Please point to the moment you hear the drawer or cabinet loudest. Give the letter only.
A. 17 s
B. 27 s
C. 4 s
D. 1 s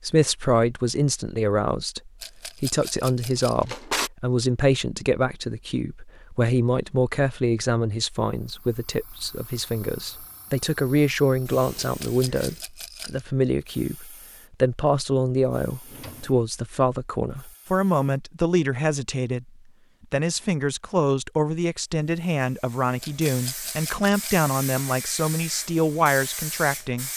C.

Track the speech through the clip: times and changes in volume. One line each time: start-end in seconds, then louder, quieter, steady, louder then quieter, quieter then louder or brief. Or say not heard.
0.0-19.5 steady
20.1-27.1 steady.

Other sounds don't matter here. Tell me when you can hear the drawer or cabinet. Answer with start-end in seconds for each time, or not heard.
3.4-4.1, 15.8-16.4.